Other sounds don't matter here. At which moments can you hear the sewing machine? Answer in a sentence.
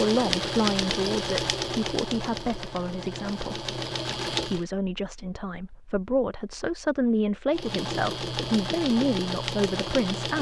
You can hear the sewing machine from 0.0 to 4.7 s and from 7.5 to 10.3 s.